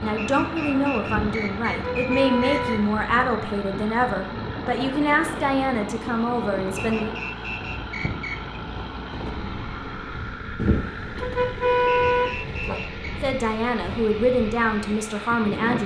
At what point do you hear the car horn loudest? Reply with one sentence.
The loudest moment of the car horn is at 12 seconds.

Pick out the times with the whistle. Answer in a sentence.
You can hear the whistle from 0.1 to 2.8 s, from 6.8 to 8.6 s and from 11.8 to 13.2 s.